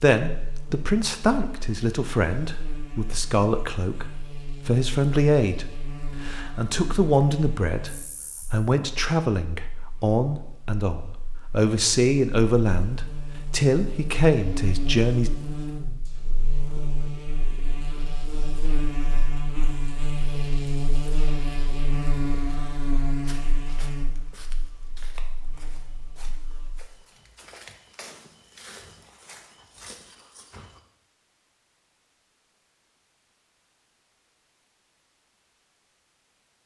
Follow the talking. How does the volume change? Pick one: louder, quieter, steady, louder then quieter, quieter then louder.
steady.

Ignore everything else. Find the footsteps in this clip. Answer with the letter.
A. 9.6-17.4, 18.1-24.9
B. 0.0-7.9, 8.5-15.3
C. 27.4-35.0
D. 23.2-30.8
D.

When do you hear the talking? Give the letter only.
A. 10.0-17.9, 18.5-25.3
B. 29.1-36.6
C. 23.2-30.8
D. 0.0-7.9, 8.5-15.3
D.